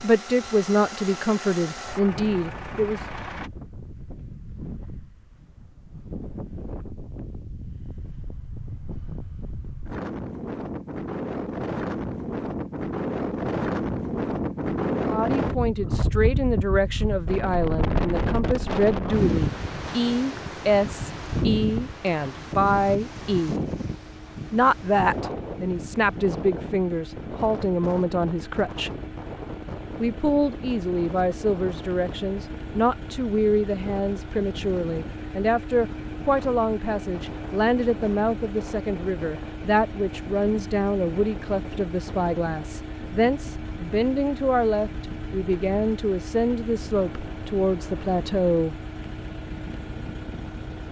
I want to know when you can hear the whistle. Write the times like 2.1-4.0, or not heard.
not heard.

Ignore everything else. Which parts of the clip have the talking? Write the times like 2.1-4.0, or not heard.
0.0-3.0, 15.1-23.6, 24.5-28.9, 30.0-48.8.